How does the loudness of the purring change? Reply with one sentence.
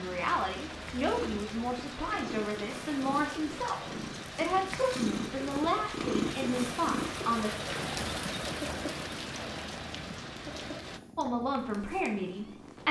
The volume of the purring goes up, then down.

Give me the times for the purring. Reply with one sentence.
You can hear the purring from 0.0 to 12.8 s.